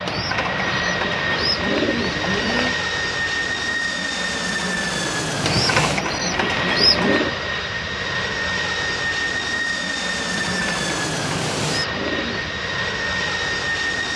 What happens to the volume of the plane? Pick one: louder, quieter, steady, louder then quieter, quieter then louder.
steady.